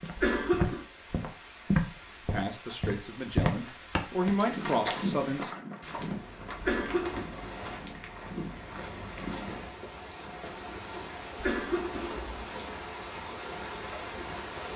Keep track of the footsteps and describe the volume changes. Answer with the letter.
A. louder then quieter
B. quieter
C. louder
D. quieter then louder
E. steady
B.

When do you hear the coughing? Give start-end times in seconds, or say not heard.
0.1-0.8, 6.6-7.2, 11.3-12.3.